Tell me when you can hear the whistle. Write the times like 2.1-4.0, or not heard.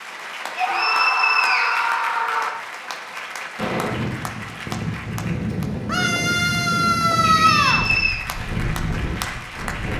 0.6-1.9, 7.2-8.2.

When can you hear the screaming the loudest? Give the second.
7 s.